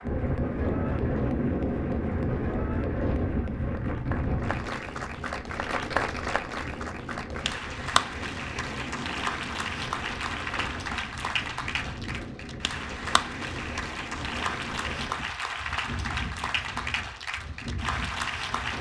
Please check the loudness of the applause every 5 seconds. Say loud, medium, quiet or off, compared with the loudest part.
medium, loud, loud, loud.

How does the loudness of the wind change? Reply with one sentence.
The loudness of the wind goes down.